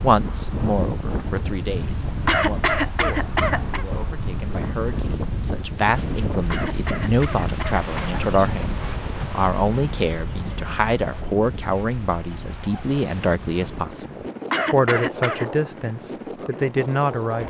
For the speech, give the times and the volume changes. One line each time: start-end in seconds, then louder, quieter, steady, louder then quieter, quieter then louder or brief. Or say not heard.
0.0-17.4 louder.